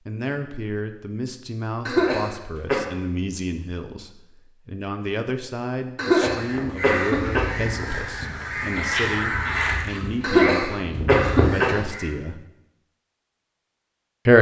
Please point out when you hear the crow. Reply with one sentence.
The crow can be heard from 6.2 to 12.2 s.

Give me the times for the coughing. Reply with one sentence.
You can hear the coughing from 1.9 to 2.8 s, from 6.0 to 7.5 s and from 10.2 to 11.8 s.